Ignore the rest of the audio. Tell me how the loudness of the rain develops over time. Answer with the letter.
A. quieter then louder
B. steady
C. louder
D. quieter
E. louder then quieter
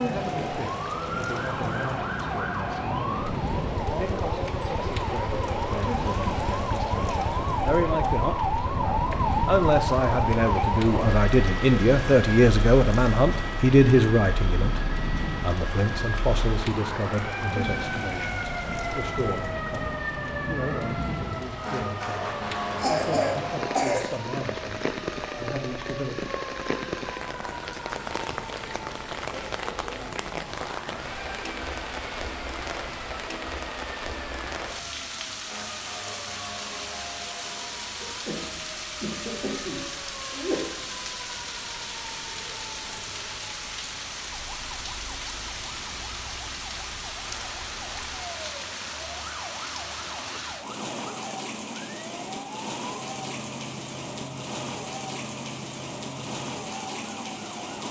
B.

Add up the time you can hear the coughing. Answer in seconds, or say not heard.
4 s.